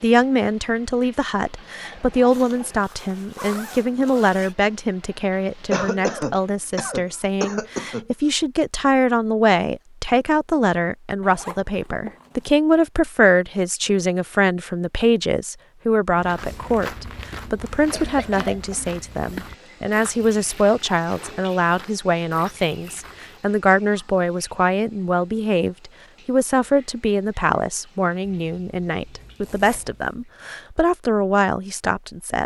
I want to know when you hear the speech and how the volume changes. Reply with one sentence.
The speech can be heard from 0.0 to 32.4 s, at a steady volume.